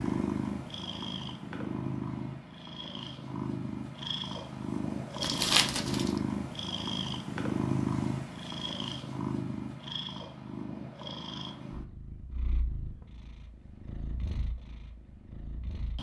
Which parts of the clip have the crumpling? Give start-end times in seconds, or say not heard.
5.2-6.2.